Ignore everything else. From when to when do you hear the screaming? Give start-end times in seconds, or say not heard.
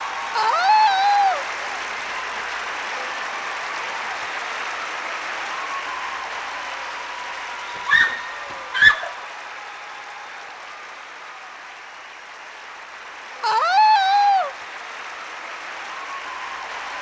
0.3-1.4, 7.8-9.1, 13.4-14.5.